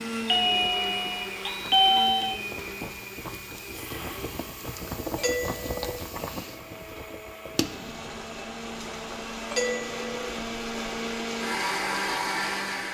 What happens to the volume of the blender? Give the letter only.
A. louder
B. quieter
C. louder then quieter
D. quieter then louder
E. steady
D.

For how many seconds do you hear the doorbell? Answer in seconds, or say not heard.
4 s.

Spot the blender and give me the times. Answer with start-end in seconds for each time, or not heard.
0.0-12.8.